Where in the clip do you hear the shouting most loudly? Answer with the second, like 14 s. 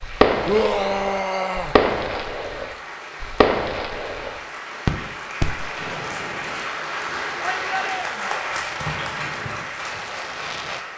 1 s.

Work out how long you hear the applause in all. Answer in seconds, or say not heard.
11 s.